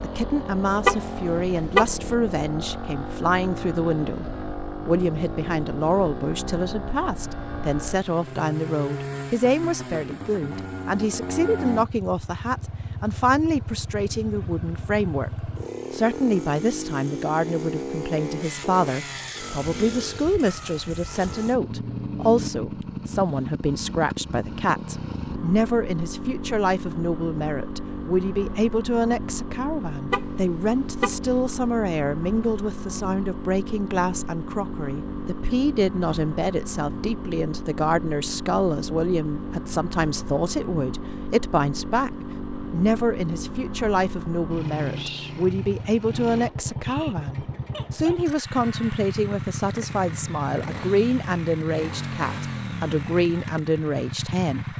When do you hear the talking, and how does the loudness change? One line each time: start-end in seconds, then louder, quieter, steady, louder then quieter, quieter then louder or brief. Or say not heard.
0.0-54.7 steady.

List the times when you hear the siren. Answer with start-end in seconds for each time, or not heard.
not heard.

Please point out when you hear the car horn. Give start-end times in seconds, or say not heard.
0.8-1.9, 30.1-31.3.